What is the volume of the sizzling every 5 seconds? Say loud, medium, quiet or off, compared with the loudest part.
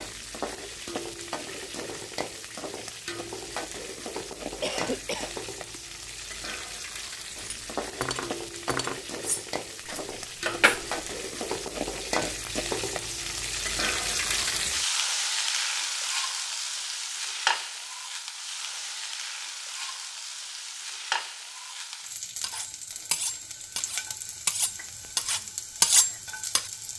medium, medium, loud, loud, medium, medium.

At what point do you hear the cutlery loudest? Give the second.
26 s.